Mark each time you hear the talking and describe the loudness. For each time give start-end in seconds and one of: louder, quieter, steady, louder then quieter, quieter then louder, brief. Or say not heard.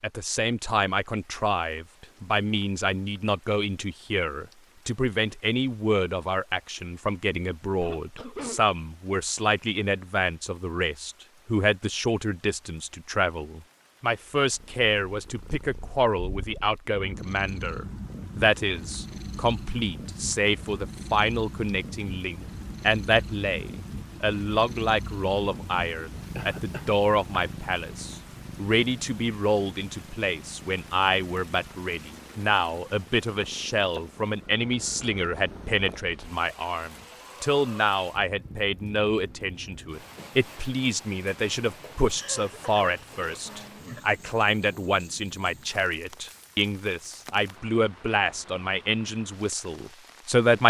0.0-50.6 steady.